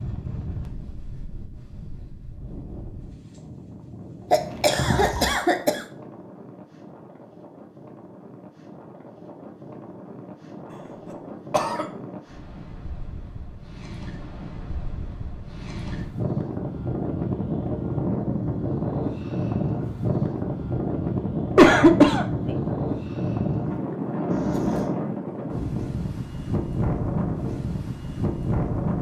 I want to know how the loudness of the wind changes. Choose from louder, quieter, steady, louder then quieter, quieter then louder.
louder.